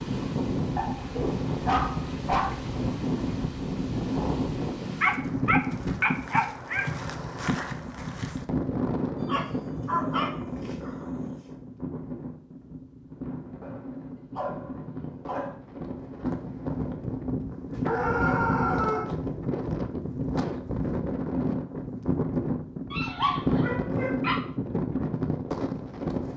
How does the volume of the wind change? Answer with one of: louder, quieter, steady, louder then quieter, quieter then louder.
quieter then louder.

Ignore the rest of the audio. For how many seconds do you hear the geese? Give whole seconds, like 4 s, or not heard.
not heard.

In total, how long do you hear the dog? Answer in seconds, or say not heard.
10 s.